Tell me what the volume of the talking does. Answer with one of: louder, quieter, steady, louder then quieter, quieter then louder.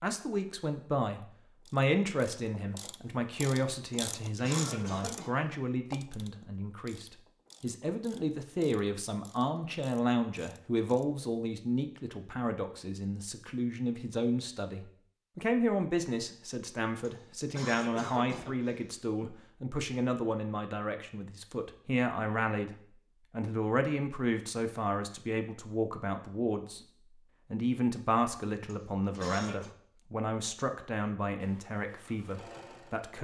steady.